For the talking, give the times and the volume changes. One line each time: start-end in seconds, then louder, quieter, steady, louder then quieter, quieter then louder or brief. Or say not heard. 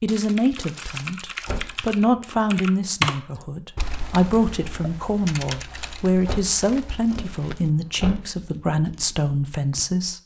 0.0-10.2 steady.